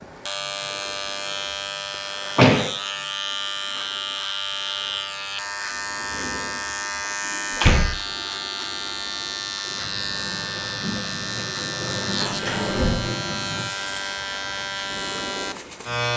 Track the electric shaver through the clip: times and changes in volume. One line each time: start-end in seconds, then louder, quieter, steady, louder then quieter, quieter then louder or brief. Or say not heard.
0.0-16.1 steady.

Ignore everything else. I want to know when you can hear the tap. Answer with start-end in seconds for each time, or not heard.
9.7-14.0.